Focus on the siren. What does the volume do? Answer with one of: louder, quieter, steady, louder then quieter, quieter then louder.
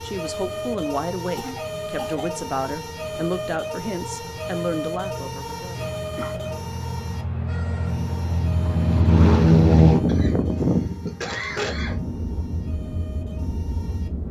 quieter.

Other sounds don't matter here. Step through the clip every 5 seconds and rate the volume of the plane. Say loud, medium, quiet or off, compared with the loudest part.
quiet, loud, medium.